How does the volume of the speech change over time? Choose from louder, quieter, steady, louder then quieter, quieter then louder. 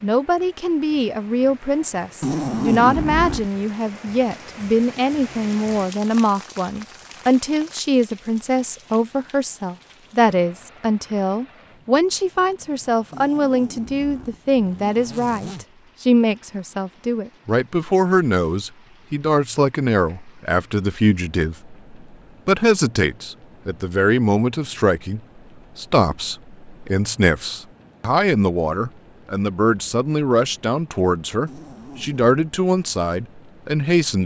steady.